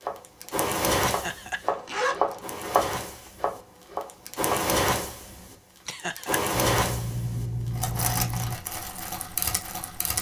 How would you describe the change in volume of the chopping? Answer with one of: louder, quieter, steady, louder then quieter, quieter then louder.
louder then quieter.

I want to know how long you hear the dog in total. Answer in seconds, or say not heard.
not heard.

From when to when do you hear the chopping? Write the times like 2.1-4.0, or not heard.
0.0-4.5.